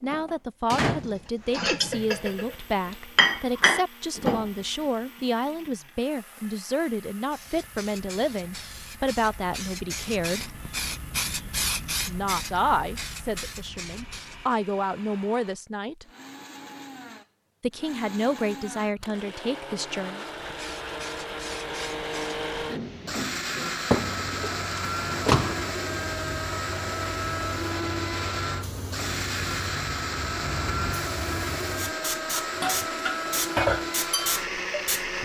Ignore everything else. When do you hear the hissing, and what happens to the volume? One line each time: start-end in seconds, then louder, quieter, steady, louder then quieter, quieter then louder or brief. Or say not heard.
7.3-14.6 louder then quieter
20.1-35.2 louder.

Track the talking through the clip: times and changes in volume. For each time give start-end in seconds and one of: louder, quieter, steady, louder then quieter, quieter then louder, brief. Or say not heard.
0.0-10.5 steady
12.1-16.1 quieter then louder
17.6-20.2 brief.